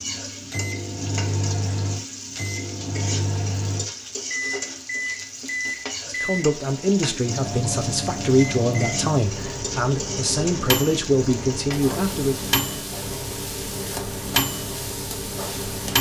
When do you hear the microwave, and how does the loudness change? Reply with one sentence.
You can hear the microwave from 0.0 to 15.9 s, at a steady volume.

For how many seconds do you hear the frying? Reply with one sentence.
You can hear the frying for 16 seconds altogether.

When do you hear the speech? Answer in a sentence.
The speech can be heard from 6.1 to 12.3 s.